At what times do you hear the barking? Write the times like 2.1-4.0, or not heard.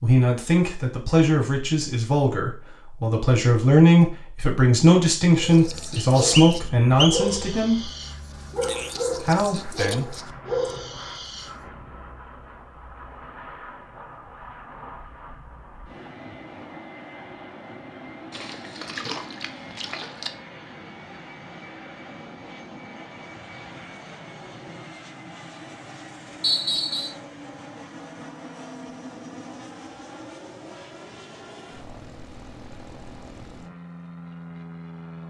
5.3-11.5.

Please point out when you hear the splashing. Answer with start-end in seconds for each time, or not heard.
18.3-20.3.